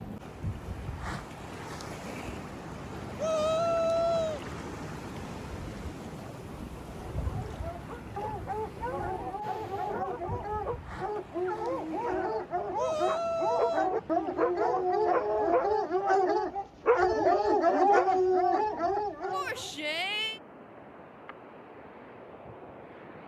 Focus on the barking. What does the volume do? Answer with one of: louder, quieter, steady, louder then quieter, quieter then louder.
louder.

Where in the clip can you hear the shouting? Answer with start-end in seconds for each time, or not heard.
3.1-4.4, 12.8-13.9, 19.3-20.4.